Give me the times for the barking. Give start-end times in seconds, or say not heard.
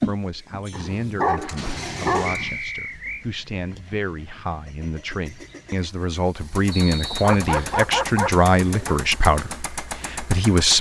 0.7-2.5, 7.2-9.0.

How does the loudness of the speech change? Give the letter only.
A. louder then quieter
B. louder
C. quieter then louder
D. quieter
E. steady
B.